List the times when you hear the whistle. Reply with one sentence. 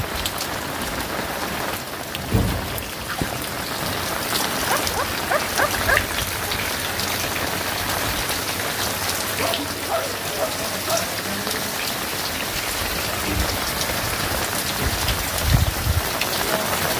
You can't hear the whistle here.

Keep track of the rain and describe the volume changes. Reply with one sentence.
The loudness of the rain stays about the same.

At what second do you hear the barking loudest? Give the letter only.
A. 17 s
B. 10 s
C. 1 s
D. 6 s
D.